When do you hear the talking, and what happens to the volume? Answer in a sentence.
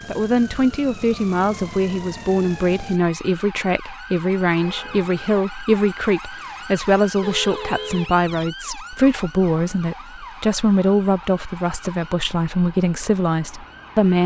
The talking can be heard from 0.1 to 14.2 s, at a steady volume.